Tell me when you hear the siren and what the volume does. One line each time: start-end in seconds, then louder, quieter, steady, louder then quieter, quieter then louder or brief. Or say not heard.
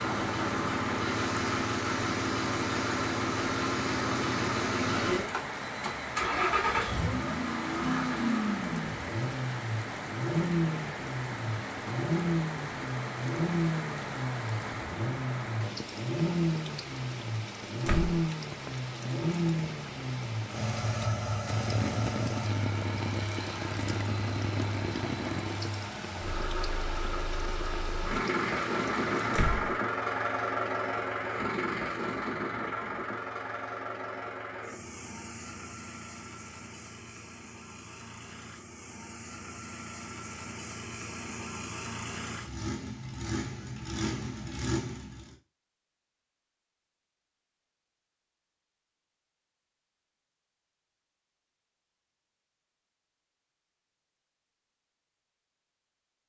not heard.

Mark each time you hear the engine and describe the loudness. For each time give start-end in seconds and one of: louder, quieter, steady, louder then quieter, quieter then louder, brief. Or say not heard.
0.0-45.4 quieter.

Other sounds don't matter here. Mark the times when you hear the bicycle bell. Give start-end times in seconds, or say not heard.
not heard.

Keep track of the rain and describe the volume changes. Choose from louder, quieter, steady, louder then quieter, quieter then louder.
steady.